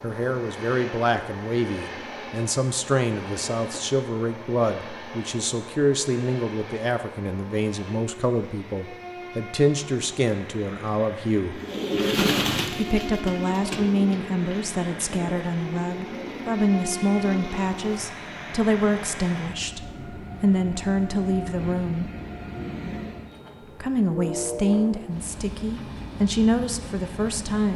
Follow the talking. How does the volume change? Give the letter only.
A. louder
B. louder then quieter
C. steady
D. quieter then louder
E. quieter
C.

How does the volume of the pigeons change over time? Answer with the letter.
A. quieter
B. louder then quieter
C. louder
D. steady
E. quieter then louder
A.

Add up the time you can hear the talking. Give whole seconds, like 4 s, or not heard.
25 s.